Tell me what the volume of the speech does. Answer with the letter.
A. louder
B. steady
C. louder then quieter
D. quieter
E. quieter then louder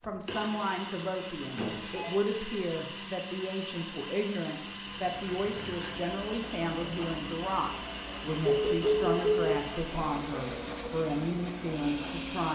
B.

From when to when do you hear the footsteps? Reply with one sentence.
The footsteps can't be heard in this clip.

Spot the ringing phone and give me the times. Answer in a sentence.
You can hear the ringing phone from 1.6 to 2.1 s and from 8.4 to 9.4 s.